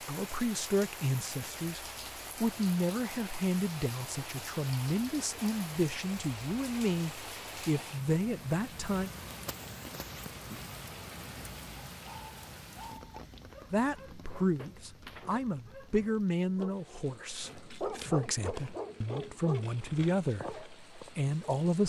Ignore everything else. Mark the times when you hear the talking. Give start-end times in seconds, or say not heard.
0.1-9.1, 13.7-21.8.